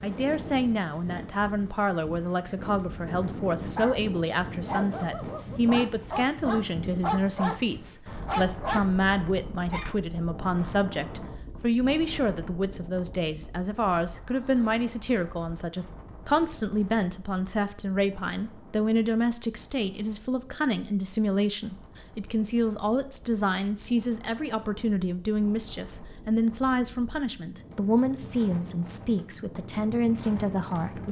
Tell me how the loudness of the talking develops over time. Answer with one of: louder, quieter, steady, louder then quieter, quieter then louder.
steady.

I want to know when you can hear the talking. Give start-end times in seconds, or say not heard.
0.0-31.0.